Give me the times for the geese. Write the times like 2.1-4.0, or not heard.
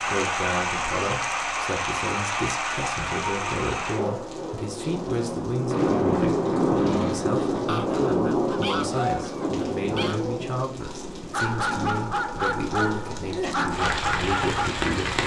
7.7-10.2.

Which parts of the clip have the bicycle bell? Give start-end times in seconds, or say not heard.
not heard.